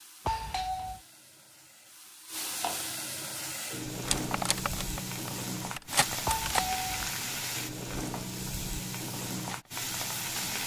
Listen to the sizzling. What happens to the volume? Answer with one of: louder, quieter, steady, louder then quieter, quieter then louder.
louder.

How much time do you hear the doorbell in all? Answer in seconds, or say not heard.
2 s.